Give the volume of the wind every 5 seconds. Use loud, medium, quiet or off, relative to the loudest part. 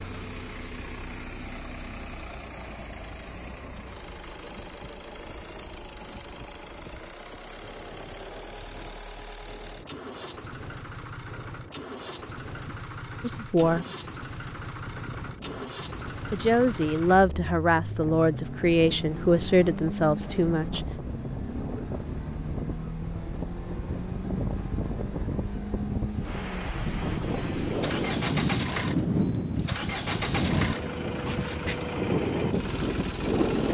quiet, quiet, quiet, quiet, medium, loud, loud.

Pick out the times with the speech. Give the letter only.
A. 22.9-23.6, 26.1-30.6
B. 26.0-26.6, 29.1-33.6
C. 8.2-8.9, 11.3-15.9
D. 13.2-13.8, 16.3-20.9
D.